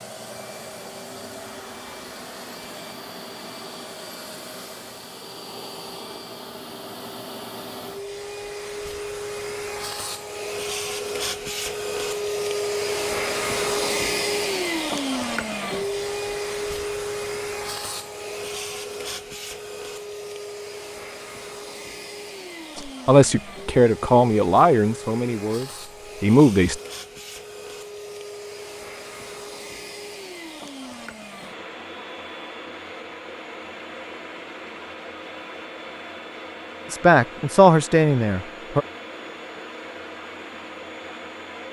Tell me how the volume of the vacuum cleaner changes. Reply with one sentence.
The volume of the vacuum cleaner goes up, then down.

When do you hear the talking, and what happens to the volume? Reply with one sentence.
You can hear the talking from 22.8 to 26.8 s, getting quieter then louder; and briefly from 36.9 to 38.9 s.